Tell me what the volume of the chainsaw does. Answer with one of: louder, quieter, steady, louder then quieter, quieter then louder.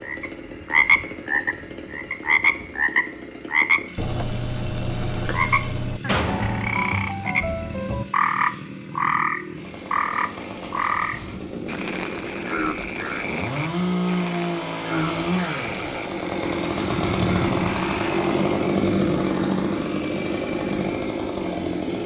louder.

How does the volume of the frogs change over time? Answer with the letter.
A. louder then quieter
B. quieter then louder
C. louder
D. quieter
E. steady
D.